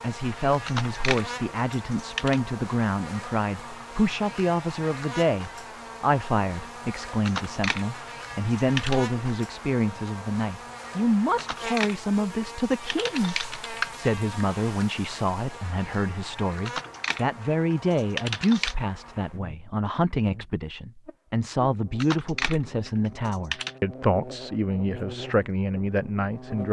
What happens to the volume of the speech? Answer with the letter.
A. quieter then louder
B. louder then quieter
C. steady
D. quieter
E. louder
C.